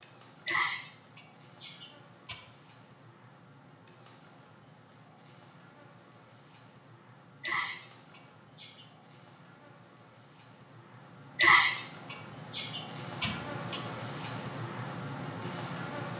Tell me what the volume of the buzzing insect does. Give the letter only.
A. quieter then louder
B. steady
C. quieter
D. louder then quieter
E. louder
E.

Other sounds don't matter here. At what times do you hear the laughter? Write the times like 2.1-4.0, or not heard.
0.5-2.4, 7.4-8.8, 11.3-13.8.